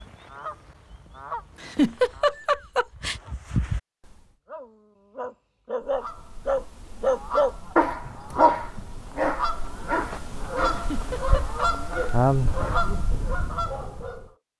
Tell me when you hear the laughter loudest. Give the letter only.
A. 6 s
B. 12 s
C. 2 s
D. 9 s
C.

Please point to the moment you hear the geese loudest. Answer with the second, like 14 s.
12 s.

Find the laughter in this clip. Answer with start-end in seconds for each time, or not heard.
1.6-3.1, 10.7-11.6.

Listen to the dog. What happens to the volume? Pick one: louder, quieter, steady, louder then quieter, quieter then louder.
louder then quieter.